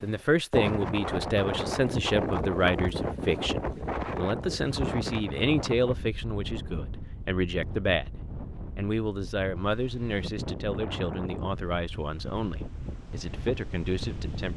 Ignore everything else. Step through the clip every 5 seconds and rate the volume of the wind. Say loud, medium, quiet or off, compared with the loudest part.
loud, medium, medium.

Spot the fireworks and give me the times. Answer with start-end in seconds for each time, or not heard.
not heard.